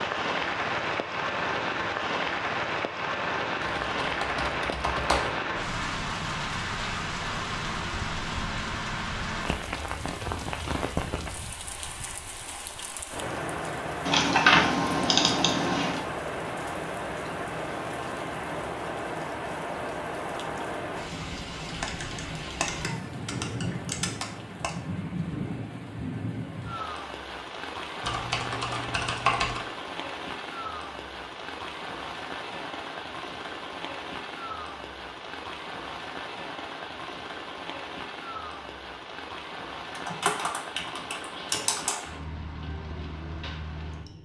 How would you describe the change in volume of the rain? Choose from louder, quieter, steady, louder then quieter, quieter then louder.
quieter.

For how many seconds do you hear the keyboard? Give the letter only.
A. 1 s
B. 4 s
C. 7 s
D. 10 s
D.